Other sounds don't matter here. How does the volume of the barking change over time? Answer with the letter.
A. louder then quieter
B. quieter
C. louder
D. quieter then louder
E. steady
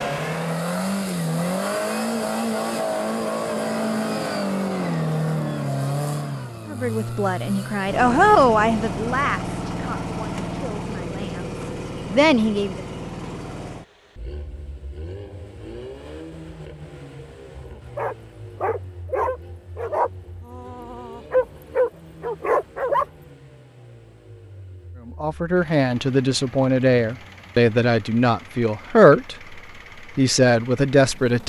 C.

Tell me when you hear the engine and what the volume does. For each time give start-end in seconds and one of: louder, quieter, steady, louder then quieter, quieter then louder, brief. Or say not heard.
0.0-31.4 quieter.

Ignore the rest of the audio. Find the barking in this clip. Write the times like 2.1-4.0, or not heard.
17.7-23.1.